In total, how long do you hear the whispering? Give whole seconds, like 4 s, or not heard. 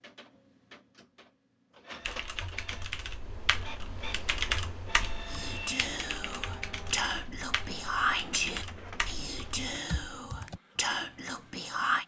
7 s.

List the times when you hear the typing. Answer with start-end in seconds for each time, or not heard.
2.0-10.6.